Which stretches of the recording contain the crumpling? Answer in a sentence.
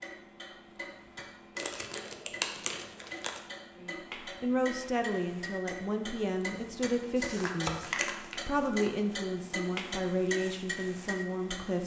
The crumpling can be heard from 1.6 to 3.4 s and from 7.2 to 8.9 s.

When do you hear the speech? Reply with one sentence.
You can hear the speech from 3.8 to 7.8 s and from 8.4 to 11.8 s.